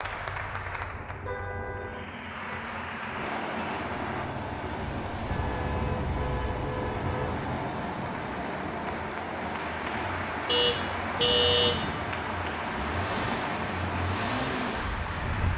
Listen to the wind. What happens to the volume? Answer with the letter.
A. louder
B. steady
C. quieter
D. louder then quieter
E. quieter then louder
A.